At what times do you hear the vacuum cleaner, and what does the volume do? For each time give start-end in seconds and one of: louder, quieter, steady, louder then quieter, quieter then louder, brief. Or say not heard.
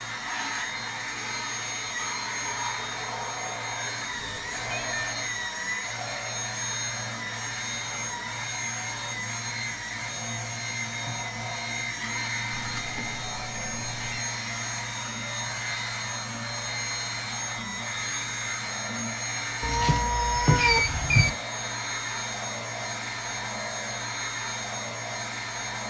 0.0-25.8 steady.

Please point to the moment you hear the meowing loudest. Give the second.
21 s.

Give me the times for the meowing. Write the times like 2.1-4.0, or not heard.
4.1-5.2, 12.5-14.2, 19.6-21.3.